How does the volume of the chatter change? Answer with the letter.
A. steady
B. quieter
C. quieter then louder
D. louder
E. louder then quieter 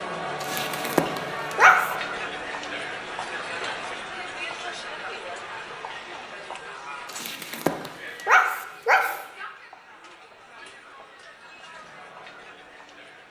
B.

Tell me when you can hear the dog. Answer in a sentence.
The dog can be heard from 0.4 to 1.9 s and from 7.0 to 9.2 s.